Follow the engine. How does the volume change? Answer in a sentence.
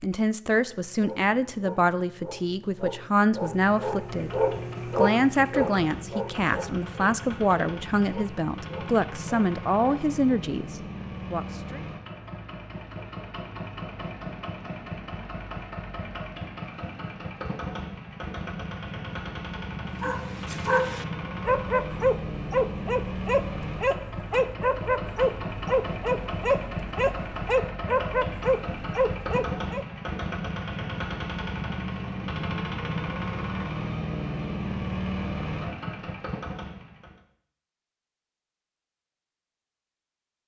The loudness of the engine goes up.